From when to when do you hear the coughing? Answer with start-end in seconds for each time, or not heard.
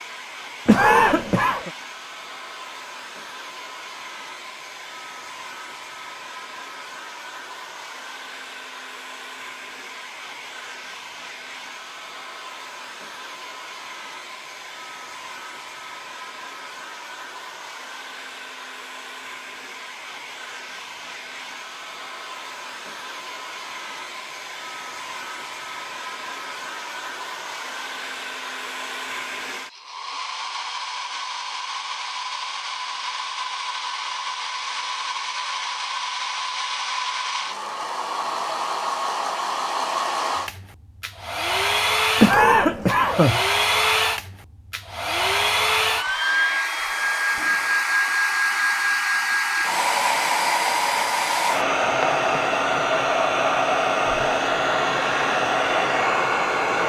0.7-1.7, 42.2-43.4.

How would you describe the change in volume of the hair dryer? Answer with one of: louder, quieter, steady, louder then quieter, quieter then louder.
louder.